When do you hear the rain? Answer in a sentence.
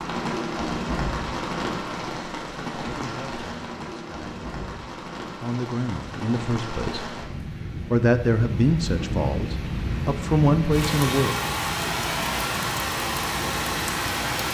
The rain can be heard from 0.0 to 14.4 s.